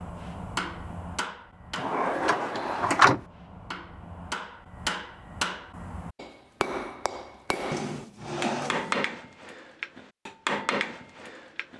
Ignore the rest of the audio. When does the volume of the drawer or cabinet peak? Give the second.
3 s.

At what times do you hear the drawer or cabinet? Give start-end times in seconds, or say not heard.
1.8-3.2, 7.7-9.1.